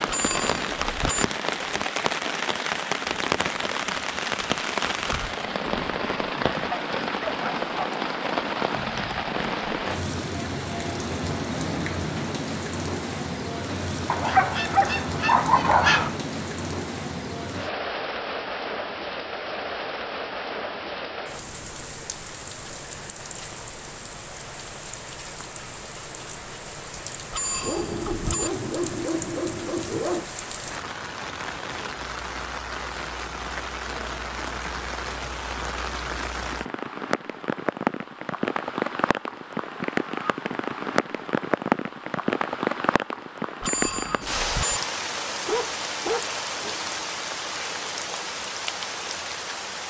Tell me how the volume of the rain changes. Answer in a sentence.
The loudness of the rain goes down, then up.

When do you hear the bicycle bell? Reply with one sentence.
The bicycle bell can be heard from 0.1 to 1.2 s, from 27.3 to 28.5 s and from 43.6 to 44.8 s.